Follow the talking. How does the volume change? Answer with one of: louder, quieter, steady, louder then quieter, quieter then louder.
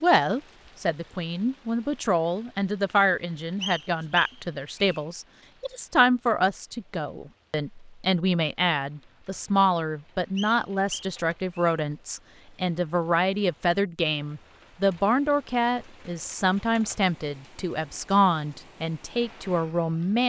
steady.